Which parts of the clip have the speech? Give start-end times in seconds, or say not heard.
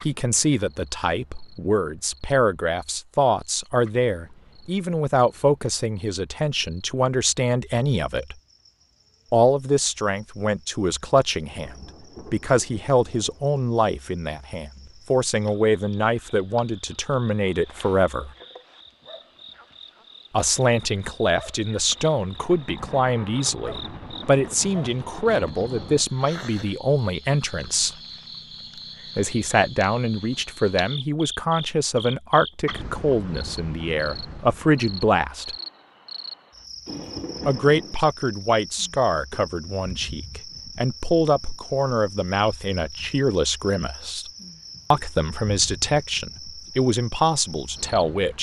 0.0-8.3, 9.3-18.3, 20.3-28.0, 29.1-35.5, 37.5-44.3, 44.9-48.3.